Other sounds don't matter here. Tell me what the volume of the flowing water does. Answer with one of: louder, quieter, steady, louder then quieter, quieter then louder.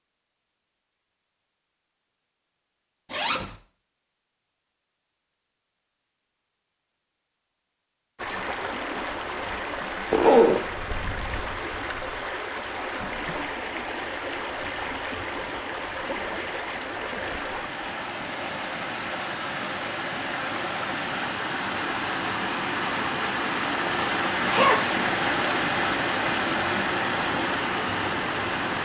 louder.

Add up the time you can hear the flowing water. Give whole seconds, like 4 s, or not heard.
21 s.